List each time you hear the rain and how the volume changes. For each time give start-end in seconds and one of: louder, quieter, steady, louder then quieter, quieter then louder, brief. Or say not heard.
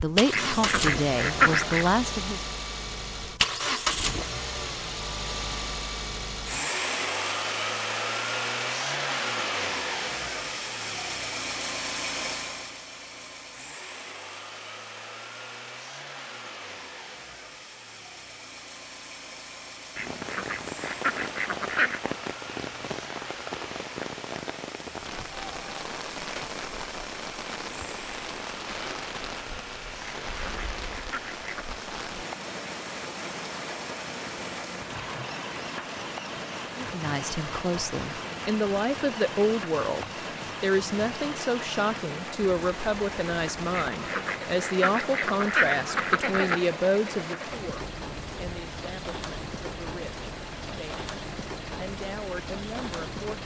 20.0-53.4 steady.